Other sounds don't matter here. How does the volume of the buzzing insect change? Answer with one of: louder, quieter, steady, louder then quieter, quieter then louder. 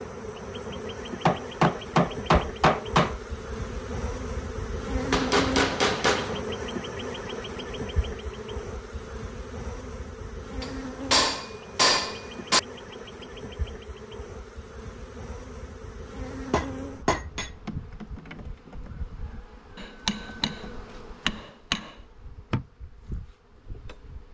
quieter.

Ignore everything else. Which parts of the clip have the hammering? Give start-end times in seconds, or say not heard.
1.2-3.1, 5.1-6.4, 10.6-12.6, 16.5-17.5, 19.8-20.6, 21.2-21.9.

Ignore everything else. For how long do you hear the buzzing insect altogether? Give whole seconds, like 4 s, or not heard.
24 s.